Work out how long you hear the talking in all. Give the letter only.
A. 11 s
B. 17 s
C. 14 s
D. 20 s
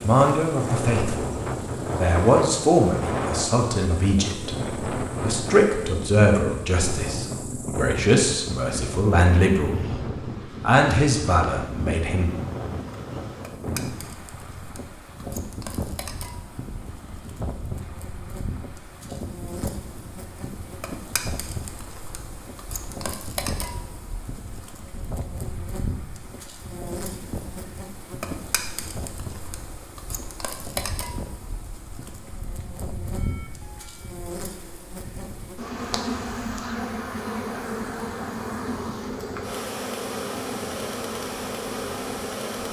A.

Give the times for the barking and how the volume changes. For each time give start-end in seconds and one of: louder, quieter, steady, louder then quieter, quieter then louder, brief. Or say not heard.
not heard.